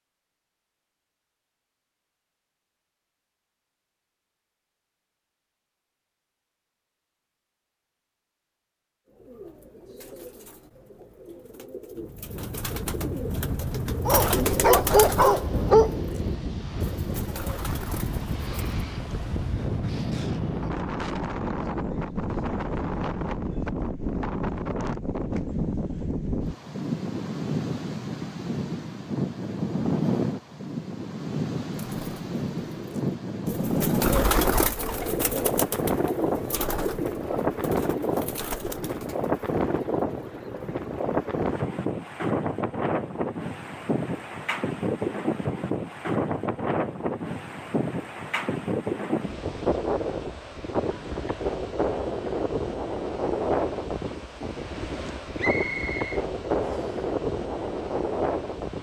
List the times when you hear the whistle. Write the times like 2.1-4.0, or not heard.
55.4-57.0.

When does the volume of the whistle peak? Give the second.
56 s.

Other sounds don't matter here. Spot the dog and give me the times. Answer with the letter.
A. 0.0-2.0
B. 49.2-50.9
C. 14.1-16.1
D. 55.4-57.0
C.